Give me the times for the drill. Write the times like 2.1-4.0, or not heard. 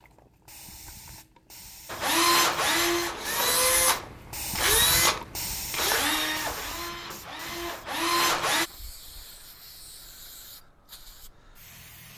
1.9-8.7.